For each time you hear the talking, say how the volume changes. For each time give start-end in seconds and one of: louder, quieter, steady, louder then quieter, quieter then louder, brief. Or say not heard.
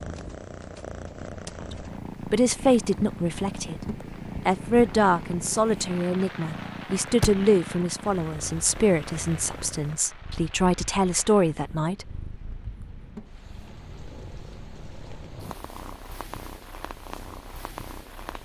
2.2-3.8 brief
4.5-12.2 quieter then louder.